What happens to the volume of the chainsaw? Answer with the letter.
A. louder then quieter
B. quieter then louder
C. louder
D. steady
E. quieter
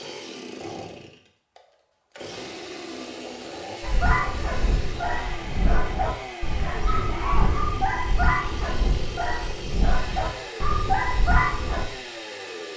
D.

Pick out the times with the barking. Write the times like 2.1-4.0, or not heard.
3.8-11.8.